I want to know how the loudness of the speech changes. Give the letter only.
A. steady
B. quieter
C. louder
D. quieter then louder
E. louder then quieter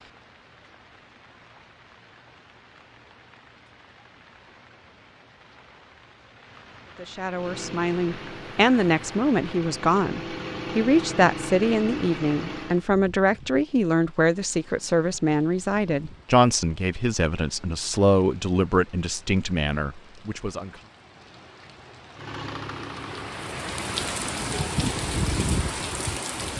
A.